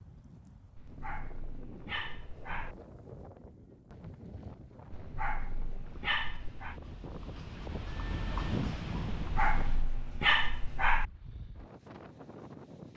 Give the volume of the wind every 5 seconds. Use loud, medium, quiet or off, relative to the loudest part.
medium, loud, medium.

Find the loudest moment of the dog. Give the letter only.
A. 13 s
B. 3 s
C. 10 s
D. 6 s
C.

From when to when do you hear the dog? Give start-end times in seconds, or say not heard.
0.8-2.8, 4.9-6.8, 9.2-11.1.